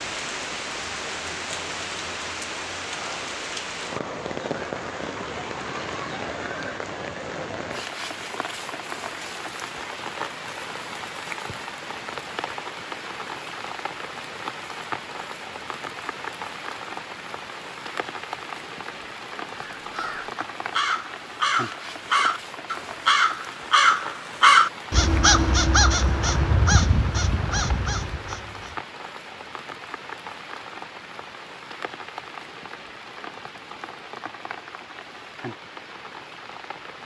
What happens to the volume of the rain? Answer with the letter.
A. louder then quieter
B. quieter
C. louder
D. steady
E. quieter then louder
B.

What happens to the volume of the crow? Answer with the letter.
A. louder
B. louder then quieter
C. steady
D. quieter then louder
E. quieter
B.